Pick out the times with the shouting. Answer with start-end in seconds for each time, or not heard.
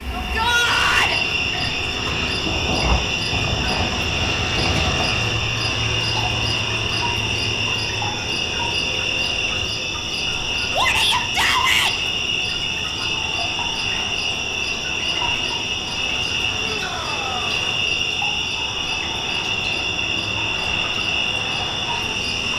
0.1-1.2, 10.7-11.9, 16.6-17.4.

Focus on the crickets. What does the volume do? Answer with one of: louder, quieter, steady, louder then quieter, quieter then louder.
steady.